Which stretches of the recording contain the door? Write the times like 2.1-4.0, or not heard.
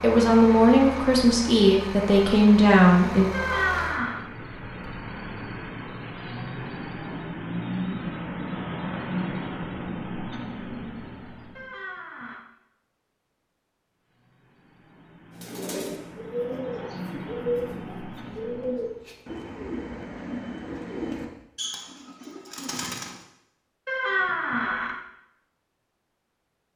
3.3-4.2, 11.6-12.4, 23.9-24.9.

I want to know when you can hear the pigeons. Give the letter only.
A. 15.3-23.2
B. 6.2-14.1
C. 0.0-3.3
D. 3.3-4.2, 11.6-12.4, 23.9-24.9
A.